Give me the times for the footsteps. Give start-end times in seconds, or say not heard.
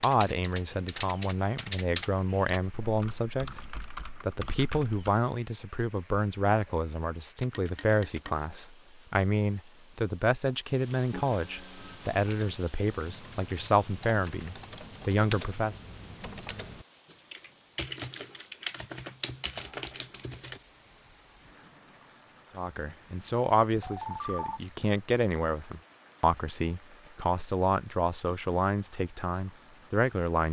not heard.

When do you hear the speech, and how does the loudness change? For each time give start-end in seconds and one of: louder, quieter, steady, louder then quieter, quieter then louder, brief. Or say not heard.
0.0-15.8 steady
22.6-30.4 steady.